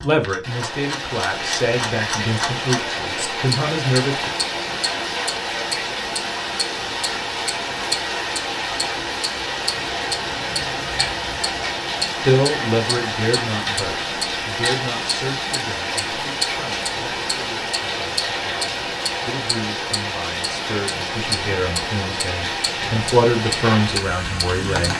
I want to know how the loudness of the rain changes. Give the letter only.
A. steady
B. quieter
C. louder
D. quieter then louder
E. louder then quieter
A.